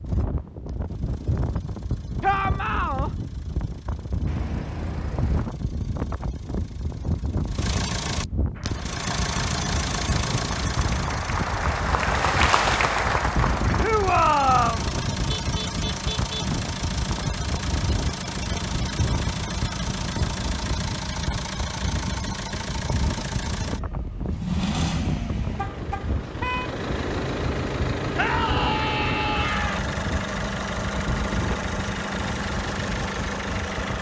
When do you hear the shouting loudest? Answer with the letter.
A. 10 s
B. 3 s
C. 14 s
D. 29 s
C.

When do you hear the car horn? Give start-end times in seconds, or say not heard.
4.2-5.5, 15.2-16.4, 25.6-26.7.